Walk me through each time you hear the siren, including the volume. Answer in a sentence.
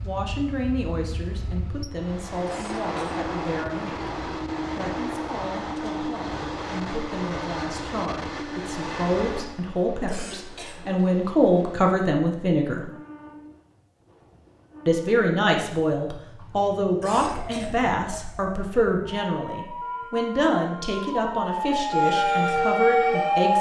The siren can be heard from 17.2 to 23.5 s, getting louder.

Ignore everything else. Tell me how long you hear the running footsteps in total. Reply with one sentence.
You can't hear the running footsteps here.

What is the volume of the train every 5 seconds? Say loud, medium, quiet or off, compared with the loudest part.
loud, loud, quiet, quiet, off.